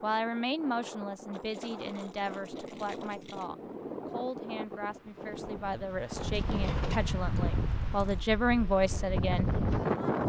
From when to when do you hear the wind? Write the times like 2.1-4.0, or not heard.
0.0-10.2.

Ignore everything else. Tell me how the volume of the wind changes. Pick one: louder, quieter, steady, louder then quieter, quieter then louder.
louder.